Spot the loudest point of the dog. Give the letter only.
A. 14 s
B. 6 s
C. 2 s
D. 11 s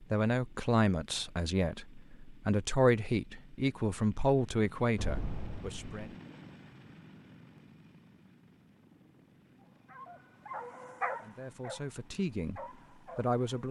D.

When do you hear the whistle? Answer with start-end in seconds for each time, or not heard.
not heard.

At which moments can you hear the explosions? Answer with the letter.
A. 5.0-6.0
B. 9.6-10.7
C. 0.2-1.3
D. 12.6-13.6
A.